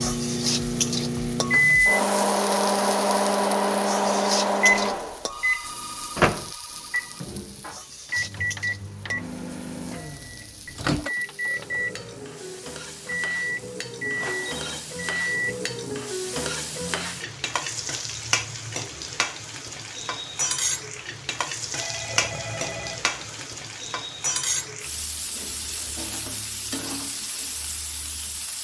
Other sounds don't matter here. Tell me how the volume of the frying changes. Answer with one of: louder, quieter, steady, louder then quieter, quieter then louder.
quieter then louder.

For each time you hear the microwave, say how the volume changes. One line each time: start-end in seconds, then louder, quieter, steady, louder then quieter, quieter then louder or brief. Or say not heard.
0.0-15.6 quieter.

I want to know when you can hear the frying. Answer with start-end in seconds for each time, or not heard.
0.0-28.5.